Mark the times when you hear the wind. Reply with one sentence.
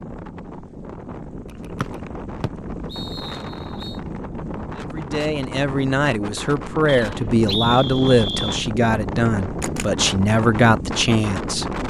You can hear the wind from 0.0 to 11.8 s.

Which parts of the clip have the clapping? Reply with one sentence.
You can't hear the clapping here.